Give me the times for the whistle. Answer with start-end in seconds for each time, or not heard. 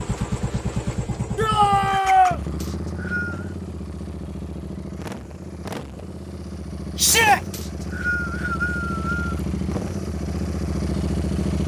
2.6-3.5, 7.5-9.3.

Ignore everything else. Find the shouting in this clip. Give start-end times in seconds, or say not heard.
1.4-2.4, 7.0-7.4.